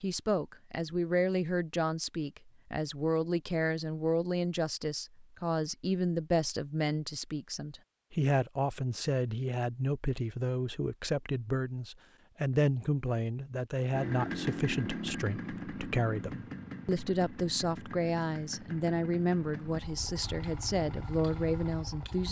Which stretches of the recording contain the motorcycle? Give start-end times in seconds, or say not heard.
13.9-22.2.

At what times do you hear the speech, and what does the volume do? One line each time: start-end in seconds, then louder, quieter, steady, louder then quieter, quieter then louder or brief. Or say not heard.
0.0-22.2 steady.